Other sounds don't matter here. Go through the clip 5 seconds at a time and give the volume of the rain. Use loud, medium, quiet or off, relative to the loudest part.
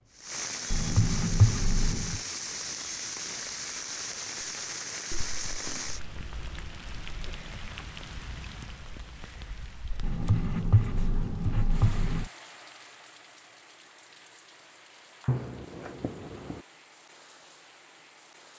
loud, medium, quiet, quiet.